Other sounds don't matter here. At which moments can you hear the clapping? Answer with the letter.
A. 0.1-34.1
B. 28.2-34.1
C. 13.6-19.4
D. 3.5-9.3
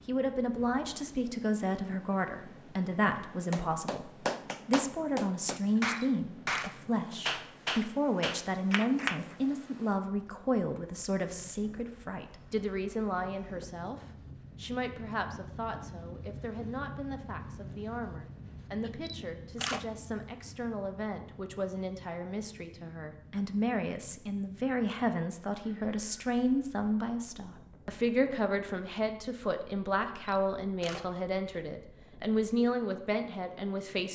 D.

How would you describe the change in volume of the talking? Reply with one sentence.
The loudness of the talking goes down, then up.